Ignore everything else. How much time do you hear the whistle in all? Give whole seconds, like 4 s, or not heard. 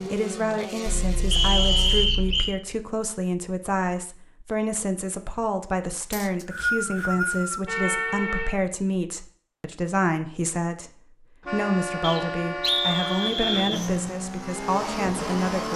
5 s.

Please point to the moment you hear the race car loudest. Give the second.
15 s.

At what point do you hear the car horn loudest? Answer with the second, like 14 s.
8 s.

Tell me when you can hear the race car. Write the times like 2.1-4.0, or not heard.
0.0-2.1, 13.2-15.7.